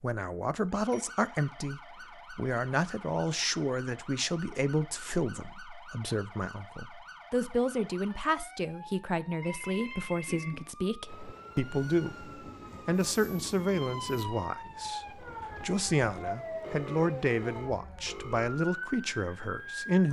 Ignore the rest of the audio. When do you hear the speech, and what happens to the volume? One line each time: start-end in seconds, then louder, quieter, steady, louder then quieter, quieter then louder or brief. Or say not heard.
0.0-20.0 steady.